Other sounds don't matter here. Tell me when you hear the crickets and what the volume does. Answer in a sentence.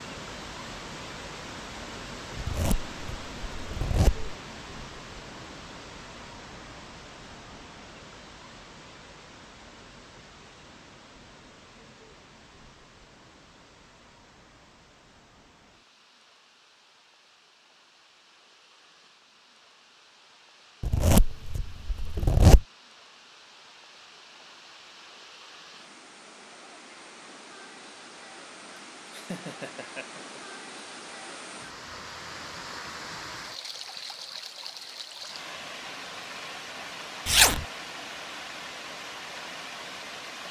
You can't hear the crickets here.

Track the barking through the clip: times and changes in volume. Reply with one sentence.
The barking can't be heard in this clip.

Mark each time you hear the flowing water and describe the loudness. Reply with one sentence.
You can hear the flowing water from 0.0 to 40.4 s, getting quieter then louder.